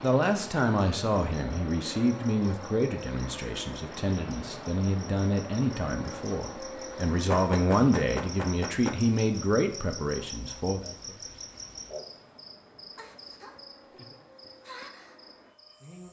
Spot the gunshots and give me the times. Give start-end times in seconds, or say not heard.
7.3-9.0.